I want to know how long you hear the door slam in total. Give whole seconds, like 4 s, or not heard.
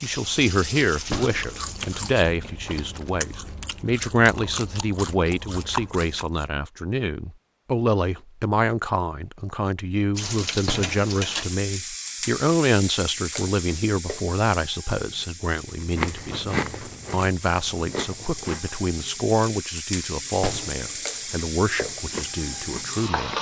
2 s.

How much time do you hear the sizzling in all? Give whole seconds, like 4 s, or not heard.
15 s.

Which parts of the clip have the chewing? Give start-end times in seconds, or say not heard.
0.0-6.5, 15.7-18.8, 21.1-23.3.